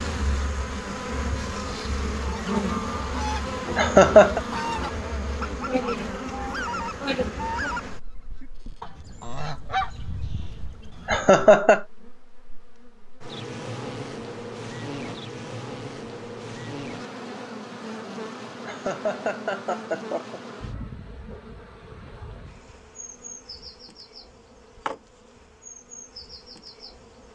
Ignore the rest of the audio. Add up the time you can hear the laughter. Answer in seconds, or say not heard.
3 s.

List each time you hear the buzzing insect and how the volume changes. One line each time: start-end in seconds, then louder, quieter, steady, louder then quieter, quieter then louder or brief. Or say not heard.
0.0-27.3 quieter.